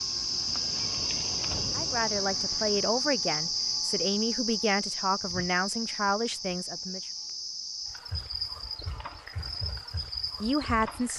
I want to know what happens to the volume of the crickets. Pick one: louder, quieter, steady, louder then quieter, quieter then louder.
quieter.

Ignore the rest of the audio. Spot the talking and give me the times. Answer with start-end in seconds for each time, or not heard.
1.8-7.0, 10.4-11.1.